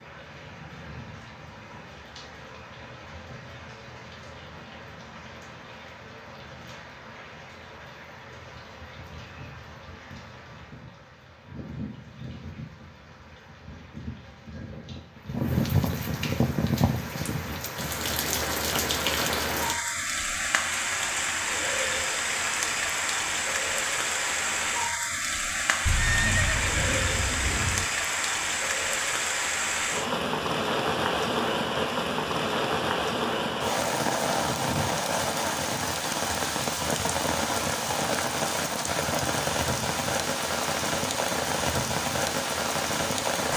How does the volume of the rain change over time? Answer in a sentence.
The volume of the rain goes up.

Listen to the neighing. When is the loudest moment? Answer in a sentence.
The loudest moment of the neighing is at 26 seconds.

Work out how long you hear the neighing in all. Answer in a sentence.
The neighing can be heard for 2 seconds in total.